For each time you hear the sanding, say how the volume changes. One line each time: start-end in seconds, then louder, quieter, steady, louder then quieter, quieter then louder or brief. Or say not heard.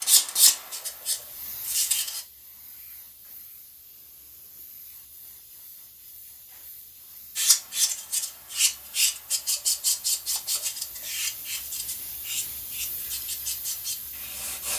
0.0-2.2 brief
7.3-14.7 quieter.